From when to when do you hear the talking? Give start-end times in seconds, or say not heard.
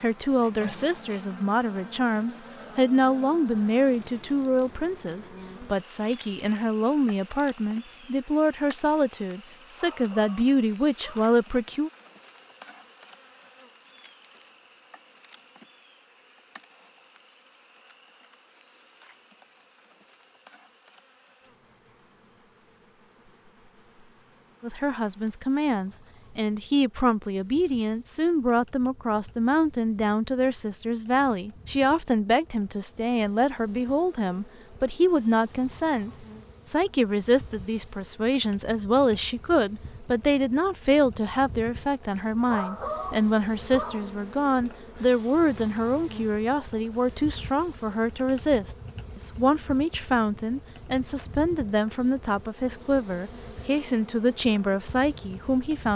0.0-11.9, 24.6-55.9.